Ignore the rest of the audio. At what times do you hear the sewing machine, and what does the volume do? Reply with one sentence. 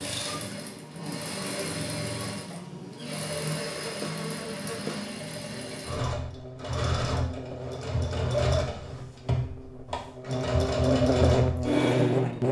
The sewing machine can be heard from 0.0 to 12.4 s, getting louder.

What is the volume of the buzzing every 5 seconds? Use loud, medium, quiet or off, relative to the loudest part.
quiet, quiet, loud.